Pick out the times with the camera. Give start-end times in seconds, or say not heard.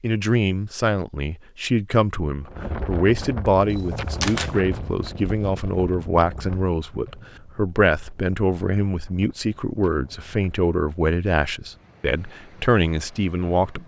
3.7-4.5.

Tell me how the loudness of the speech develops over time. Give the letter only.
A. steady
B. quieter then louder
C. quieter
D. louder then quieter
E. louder
A.